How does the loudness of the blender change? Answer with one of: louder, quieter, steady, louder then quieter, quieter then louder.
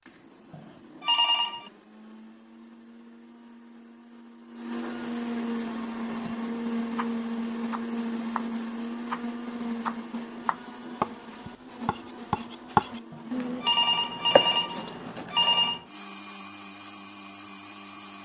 louder then quieter.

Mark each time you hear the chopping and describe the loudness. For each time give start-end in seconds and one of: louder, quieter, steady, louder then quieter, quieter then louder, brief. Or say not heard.
5.6-15.8 louder then quieter.